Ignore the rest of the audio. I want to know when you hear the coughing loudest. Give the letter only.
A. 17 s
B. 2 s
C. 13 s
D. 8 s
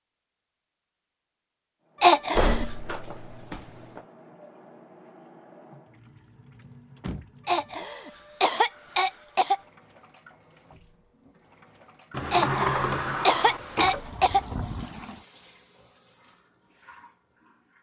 B.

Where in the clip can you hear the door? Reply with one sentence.
The door can be heard from 2.4 to 4.0 s, from 6.5 to 7.3 s and from 12.1 to 14.2 s.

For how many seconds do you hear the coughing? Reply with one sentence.
The coughing can be heard for 5 seconds in total.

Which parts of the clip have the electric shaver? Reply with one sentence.
The electric shaver can't be heard in this clip.